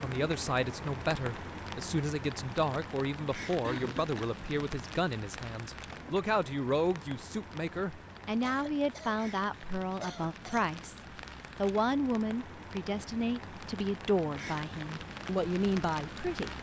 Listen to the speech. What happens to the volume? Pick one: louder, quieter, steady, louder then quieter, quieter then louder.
steady.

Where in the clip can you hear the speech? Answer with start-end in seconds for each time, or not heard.
0.0-16.5.